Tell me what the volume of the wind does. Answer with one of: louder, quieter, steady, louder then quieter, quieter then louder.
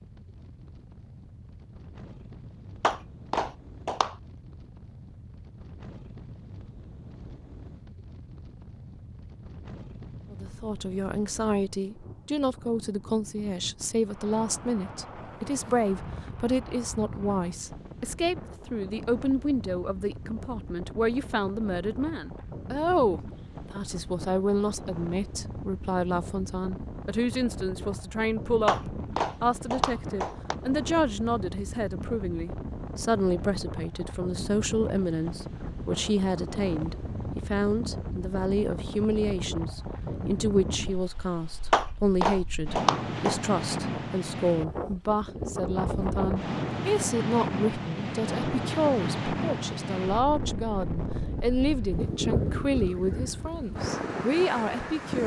louder.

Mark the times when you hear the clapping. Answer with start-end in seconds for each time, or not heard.
2.8-4.2, 28.6-30.6, 41.7-43.4.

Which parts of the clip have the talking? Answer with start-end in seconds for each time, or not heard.
10.3-55.2.